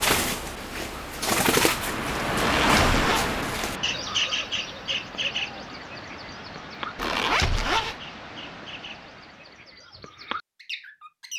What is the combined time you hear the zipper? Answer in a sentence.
The zipper can be heard for 2 seconds in total.